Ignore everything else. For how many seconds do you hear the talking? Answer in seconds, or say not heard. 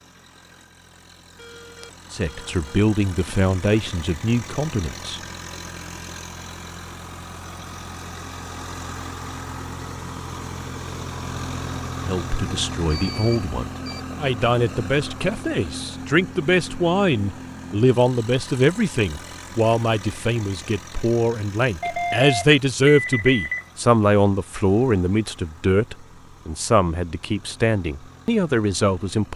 20 s.